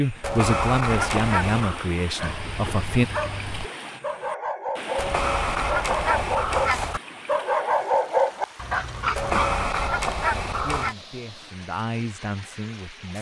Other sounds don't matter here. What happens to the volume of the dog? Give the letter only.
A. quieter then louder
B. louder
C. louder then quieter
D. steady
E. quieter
B.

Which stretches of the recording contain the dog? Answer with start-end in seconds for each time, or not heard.
2.1-9.6.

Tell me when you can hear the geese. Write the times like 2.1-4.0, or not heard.
0.2-1.9, 5.0-7.0, 9.2-10.9.